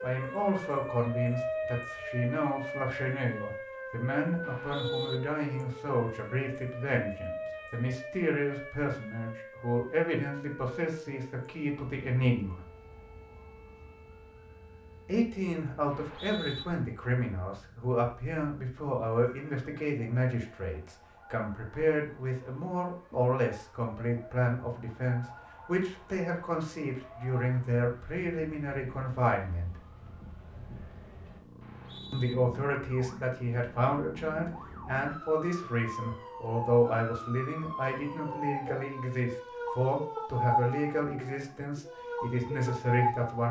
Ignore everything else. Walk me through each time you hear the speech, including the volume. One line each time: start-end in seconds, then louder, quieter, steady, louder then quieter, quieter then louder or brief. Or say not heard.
0.0-12.6 steady
15.1-29.8 steady
32.1-43.4 steady.